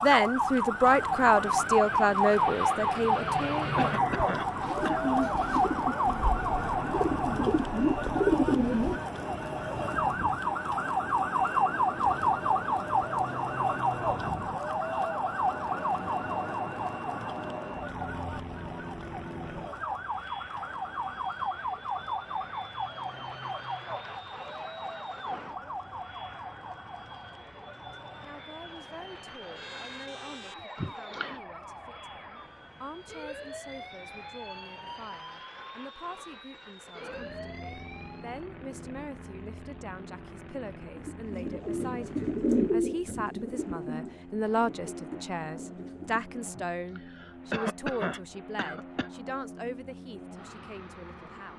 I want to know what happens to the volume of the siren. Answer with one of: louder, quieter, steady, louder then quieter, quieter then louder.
quieter.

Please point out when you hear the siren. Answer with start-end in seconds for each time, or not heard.
0.0-38.4.